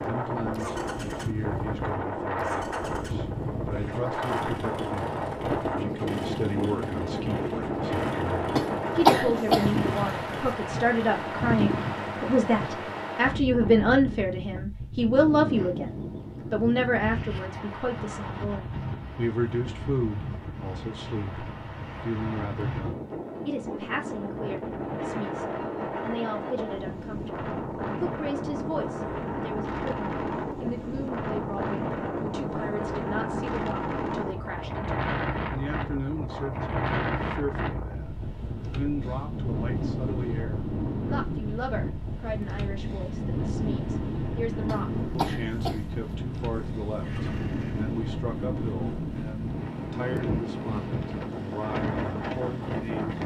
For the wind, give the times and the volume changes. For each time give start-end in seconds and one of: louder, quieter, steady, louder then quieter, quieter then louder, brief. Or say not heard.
0.0-53.2 steady.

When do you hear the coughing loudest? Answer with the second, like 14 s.
9 s.